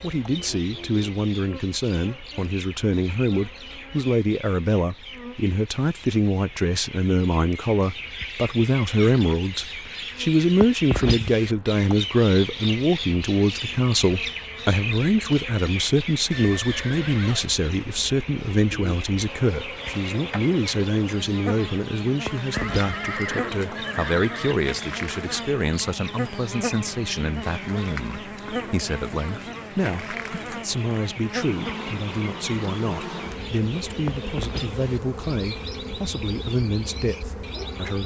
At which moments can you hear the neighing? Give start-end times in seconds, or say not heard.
16.3-17.4, 22.5-24.6.